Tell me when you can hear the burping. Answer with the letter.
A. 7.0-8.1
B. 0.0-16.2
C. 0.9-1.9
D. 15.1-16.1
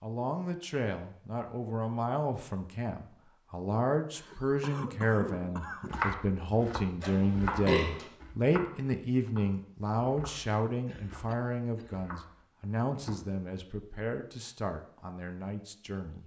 A.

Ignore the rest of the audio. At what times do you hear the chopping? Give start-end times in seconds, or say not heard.
5.9-13.2.